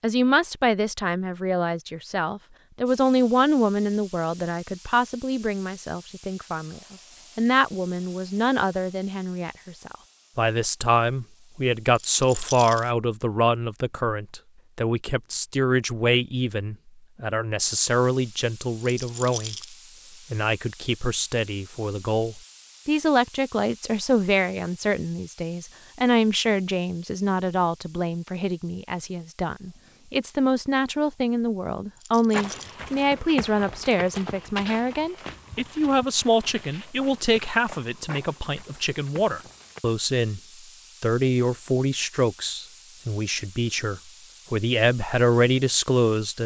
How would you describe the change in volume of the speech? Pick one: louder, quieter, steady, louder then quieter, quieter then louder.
steady.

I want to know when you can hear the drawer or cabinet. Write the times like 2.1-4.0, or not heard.
not heard.